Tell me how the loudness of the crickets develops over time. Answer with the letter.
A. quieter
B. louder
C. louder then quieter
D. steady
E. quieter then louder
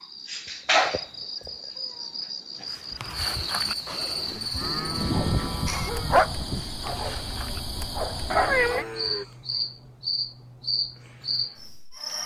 D.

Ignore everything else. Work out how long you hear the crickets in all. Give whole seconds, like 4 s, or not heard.
12 s.